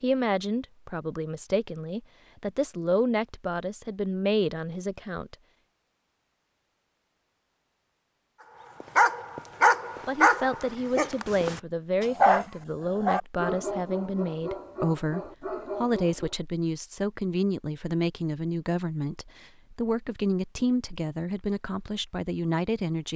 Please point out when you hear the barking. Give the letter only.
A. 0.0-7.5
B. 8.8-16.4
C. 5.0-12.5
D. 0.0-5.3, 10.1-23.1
B.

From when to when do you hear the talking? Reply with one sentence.
You can hear the talking from 0.0 to 5.3 s and from 10.1 to 23.1 s.